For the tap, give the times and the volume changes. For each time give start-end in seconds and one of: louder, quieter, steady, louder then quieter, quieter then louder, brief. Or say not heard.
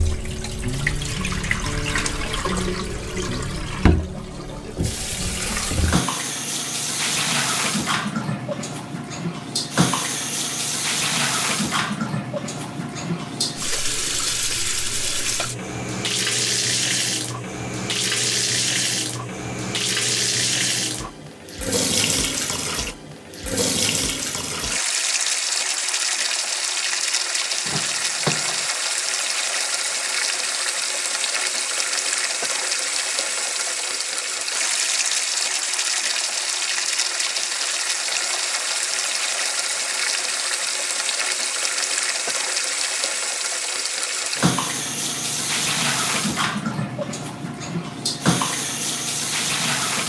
0.0-50.0 steady.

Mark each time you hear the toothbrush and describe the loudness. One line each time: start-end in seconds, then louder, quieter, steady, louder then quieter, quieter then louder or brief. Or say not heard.
not heard.